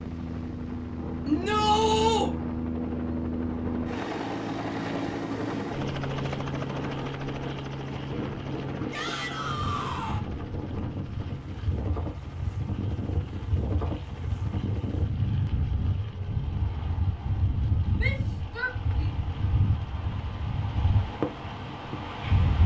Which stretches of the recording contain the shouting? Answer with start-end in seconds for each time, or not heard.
1.2-2.3, 8.9-10.2, 17.9-19.1.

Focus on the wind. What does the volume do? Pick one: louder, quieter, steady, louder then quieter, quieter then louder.
louder.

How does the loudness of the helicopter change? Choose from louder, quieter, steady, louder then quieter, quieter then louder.
quieter.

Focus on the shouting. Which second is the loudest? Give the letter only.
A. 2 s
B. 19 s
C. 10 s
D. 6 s
A.